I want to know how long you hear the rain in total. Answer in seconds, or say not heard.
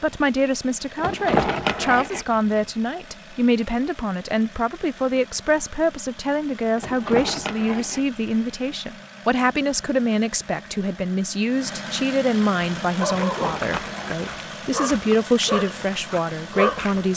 not heard.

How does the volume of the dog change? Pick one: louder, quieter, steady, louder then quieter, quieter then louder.
quieter then louder.